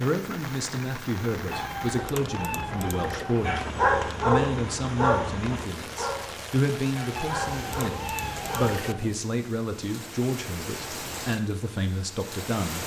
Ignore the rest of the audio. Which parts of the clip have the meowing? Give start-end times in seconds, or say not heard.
1.5-3.5, 7.2-9.2.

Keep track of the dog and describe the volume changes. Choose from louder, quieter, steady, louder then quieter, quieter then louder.
quieter.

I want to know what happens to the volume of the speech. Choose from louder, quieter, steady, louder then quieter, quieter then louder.
steady.